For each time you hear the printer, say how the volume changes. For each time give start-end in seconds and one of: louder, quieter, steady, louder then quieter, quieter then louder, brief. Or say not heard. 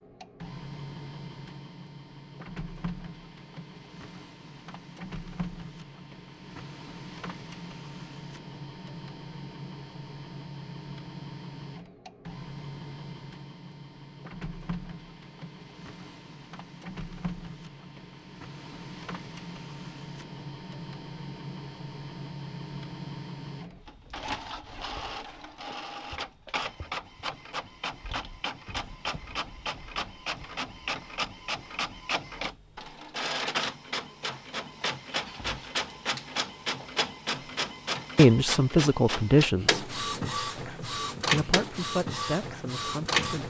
0.0-43.4 louder.